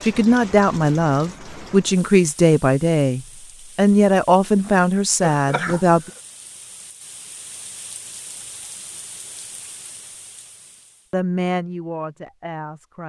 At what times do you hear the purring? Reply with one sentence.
You can't hear the purring here.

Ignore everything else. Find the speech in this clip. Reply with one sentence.
You can hear the speech from 0.0 to 6.1 s and from 11.1 to 13.0 s.